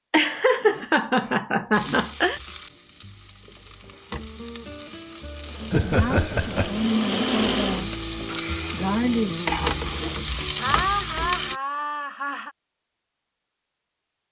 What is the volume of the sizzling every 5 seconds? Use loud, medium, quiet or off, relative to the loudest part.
quiet, loud, loud.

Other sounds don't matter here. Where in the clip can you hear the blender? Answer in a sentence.
You can hear the blender from 5.4 to 8.9 s.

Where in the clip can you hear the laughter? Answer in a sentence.
You can hear the laughter from 0.1 to 2.4 s, from 5.7 to 6.8 s and from 10.6 to 12.5 s.